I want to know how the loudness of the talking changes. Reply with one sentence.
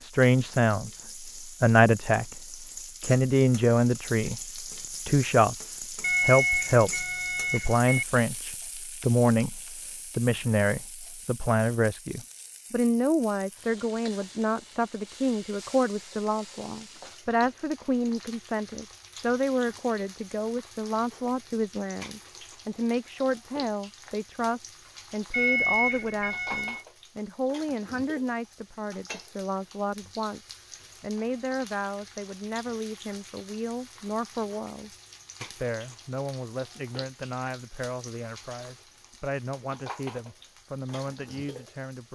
The loudness of the talking goes down.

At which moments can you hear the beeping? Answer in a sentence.
You can hear the beeping from 6.0 to 8.1 s and from 25.3 to 26.9 s.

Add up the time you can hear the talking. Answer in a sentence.
The talking can be heard for 42 seconds in total.